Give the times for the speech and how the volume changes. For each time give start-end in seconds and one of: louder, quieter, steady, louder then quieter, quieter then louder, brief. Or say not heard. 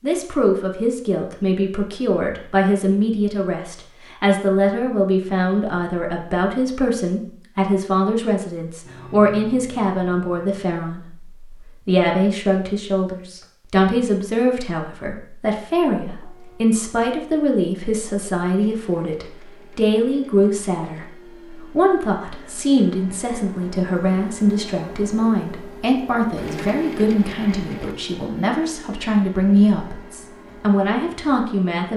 0.0-31.9 steady.